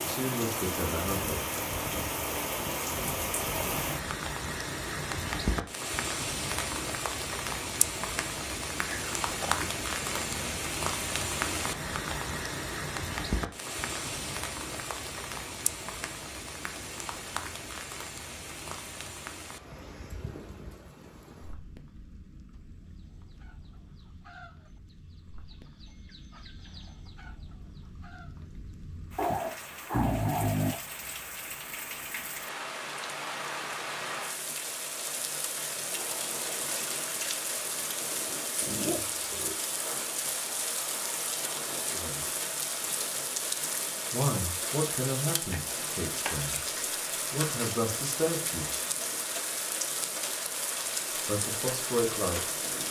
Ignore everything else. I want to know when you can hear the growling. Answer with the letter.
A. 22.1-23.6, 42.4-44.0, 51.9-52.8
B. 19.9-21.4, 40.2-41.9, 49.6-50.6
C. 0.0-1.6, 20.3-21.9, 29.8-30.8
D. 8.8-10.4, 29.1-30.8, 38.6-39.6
D.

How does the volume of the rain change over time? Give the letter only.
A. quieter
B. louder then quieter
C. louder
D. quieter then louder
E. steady
D.